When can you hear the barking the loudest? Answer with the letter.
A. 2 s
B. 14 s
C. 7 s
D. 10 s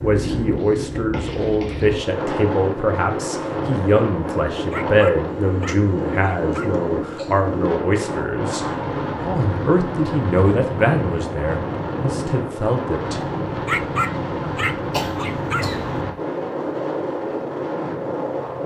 B.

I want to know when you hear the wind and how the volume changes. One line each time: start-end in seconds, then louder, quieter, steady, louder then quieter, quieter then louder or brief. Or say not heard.
0.0-18.6 steady.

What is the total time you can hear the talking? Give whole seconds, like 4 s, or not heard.
13 s.